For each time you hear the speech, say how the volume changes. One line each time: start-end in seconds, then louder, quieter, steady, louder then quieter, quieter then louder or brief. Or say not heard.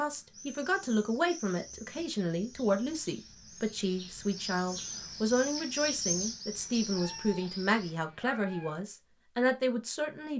0.0-10.3 steady.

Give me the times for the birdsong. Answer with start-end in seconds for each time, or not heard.
0.0-8.0.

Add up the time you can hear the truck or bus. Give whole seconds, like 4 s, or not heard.
not heard.